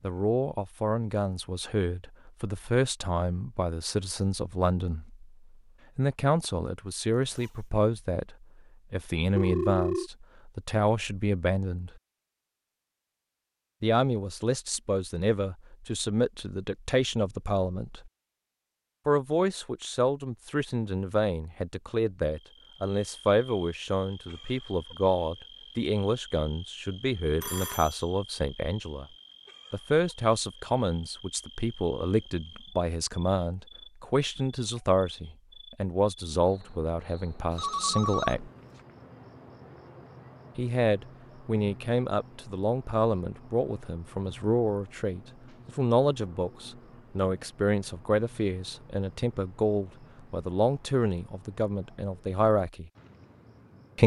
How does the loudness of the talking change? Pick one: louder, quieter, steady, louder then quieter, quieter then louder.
steady.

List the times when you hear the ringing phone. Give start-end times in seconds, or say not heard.
9.3-10.1, 27.4-28.1, 37.5-38.4.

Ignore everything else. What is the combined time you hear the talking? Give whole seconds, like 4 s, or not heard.
47 s.